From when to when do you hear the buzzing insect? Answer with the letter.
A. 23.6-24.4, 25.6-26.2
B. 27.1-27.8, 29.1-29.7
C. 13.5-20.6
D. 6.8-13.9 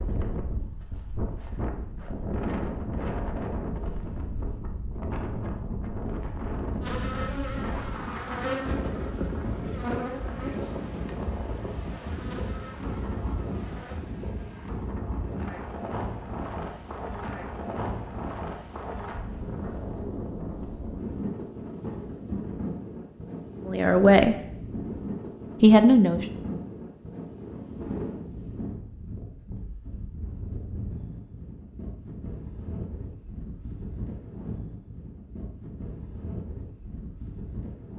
D.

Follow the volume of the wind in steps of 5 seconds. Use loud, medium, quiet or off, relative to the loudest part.
loud, loud, loud, loud, loud, loud, medium, medium.